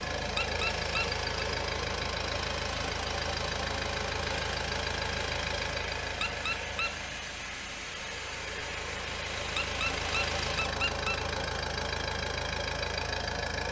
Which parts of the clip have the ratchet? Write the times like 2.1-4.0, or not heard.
not heard.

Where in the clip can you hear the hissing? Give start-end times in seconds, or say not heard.
0.0-10.7.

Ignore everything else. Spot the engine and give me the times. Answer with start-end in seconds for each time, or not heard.
0.0-13.6.